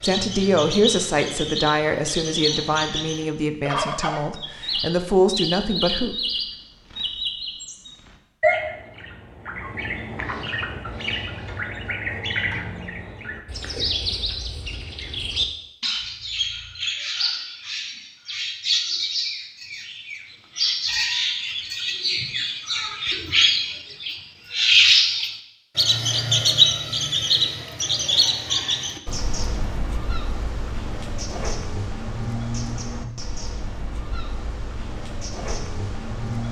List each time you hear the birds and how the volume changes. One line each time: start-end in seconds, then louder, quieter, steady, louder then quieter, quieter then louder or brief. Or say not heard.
0.0-36.4 louder then quieter.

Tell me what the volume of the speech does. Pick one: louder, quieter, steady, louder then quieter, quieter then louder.
quieter then louder.